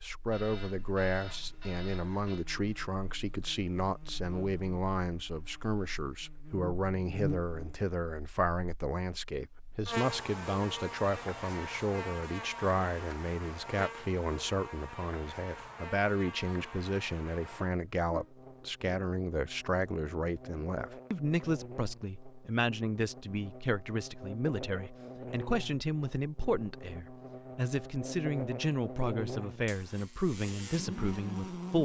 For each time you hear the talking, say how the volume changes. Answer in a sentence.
The talking can be heard from 0.0 to 31.8 s, at a steady volume.